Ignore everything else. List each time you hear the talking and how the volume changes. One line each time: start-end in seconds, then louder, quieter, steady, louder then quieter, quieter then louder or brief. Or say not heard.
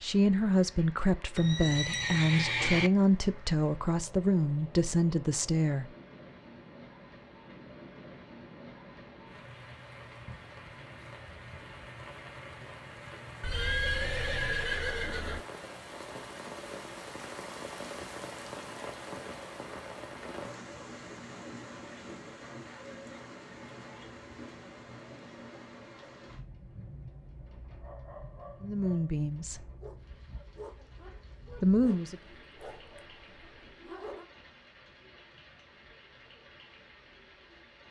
0.0-5.8 steady
28.6-29.6 brief
31.6-32.1 brief.